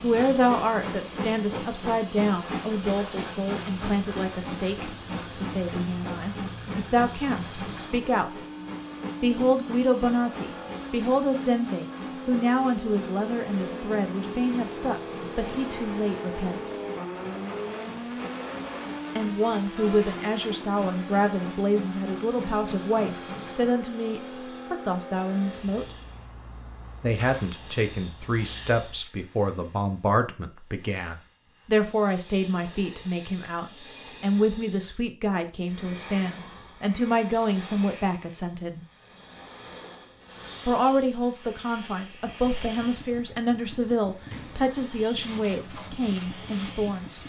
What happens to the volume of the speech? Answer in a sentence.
The volume of the speech stays about the same.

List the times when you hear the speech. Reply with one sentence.
The speech can be heard from 0.0 to 8.3 s, from 9.2 to 16.8 s, from 19.1 to 25.9 s, from 27.0 to 38.9 s and from 40.6 to 47.2 s.